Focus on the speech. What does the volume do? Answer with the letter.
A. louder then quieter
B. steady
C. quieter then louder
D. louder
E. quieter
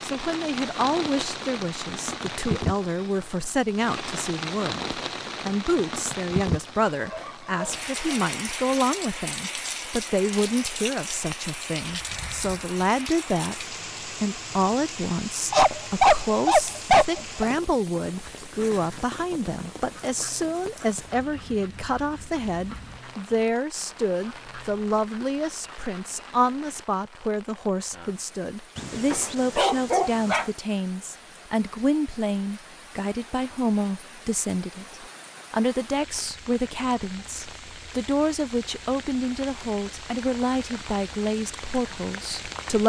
B.